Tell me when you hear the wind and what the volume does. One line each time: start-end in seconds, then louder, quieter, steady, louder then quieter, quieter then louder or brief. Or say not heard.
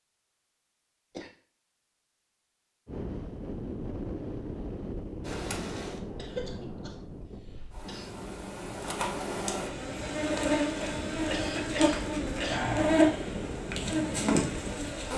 2.9-15.1 quieter then louder.